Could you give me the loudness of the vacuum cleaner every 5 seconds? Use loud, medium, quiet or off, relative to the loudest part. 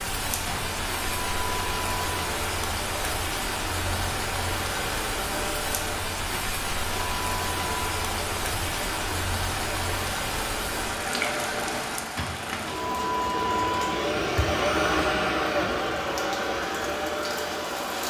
medium, medium, loud, loud.